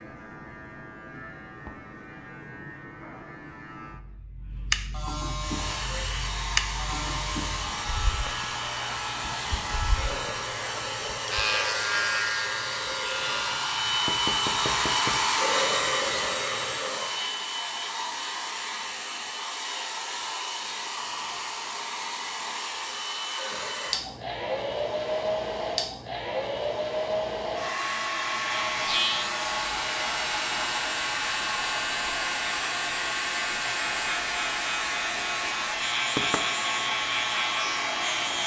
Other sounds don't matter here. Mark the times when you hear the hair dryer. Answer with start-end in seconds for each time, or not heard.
5.3-38.4.